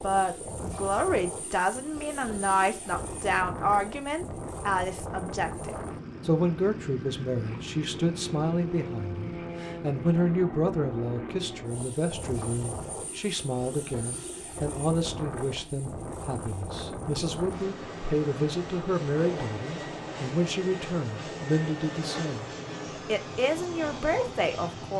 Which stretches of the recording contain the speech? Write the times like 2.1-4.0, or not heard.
0.0-24.9.